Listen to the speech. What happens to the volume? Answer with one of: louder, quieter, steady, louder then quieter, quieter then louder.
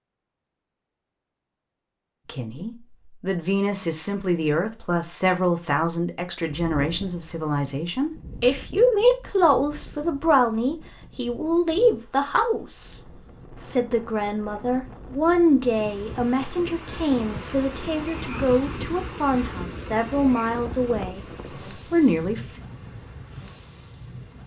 steady.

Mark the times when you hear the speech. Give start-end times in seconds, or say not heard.
2.2-13.0, 13.6-22.6.